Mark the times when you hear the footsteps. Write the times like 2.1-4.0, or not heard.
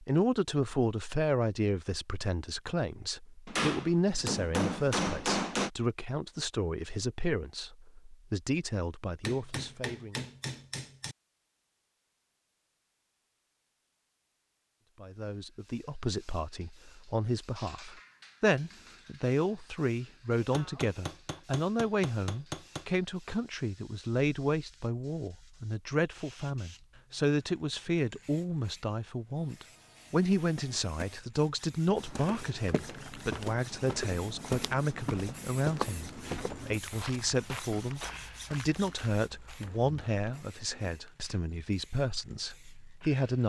31.9-40.1.